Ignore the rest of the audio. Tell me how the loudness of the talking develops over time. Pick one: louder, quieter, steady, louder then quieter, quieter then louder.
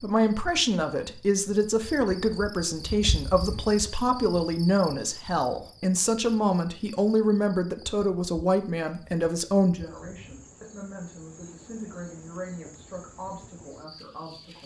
quieter.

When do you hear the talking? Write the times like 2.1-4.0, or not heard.
0.0-14.6.